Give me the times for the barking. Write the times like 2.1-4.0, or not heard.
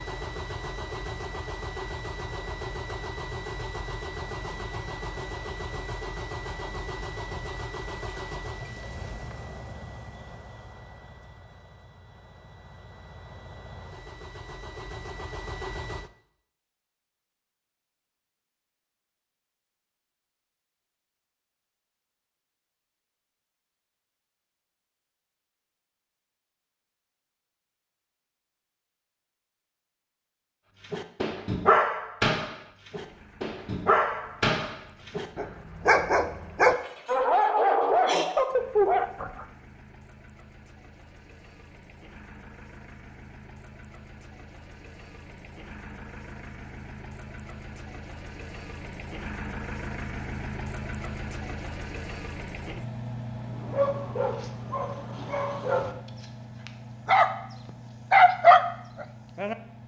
30.9-39.3, 53.4-57.3, 58.1-59.5.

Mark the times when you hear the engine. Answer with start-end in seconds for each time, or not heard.
0.0-16.1, 32.9-59.8.